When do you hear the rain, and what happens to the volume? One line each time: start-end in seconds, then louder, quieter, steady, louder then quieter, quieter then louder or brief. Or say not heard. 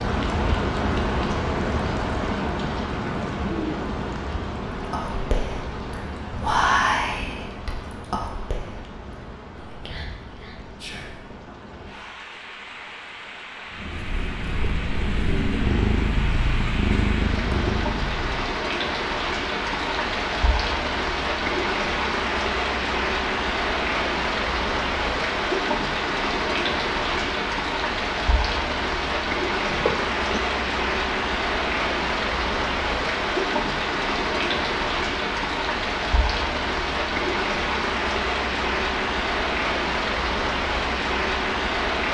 0.0-42.1 quieter then louder.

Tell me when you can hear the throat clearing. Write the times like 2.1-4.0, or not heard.
29.7-30.4.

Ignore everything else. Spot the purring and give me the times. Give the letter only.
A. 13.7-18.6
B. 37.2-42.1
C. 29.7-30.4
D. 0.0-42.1
A.